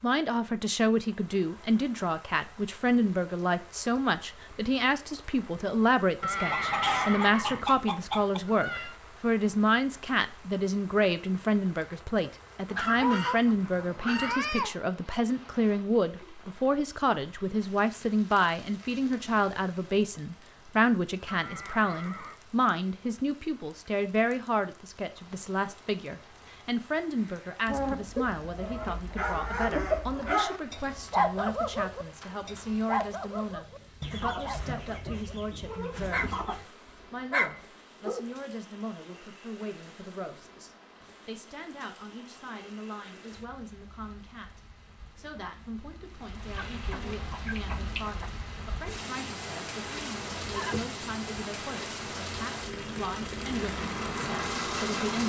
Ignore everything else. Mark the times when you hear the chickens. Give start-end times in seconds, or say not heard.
6.3-8.4, 12.7-14.8, 27.6-30.4, 34.0-36.7, 46.5-48.3.